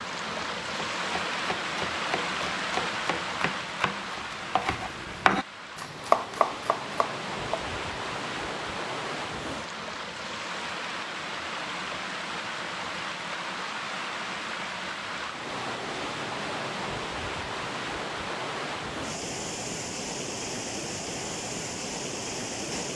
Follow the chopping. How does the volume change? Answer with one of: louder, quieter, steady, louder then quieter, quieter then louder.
louder.